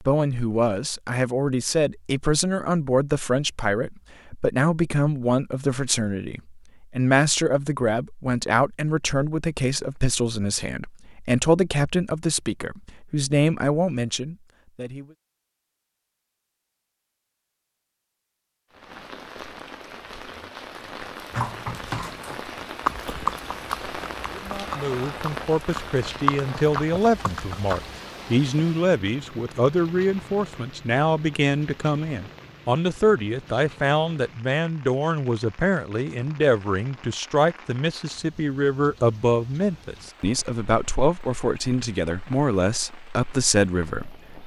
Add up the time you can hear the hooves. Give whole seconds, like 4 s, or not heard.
7 s.